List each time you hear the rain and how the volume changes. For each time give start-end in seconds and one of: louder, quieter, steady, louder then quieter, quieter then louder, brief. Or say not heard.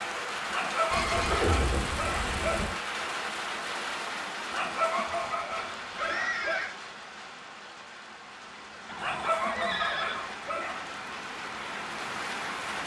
0.0-12.8 quieter then louder.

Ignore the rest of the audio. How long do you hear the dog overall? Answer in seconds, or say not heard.
6 s.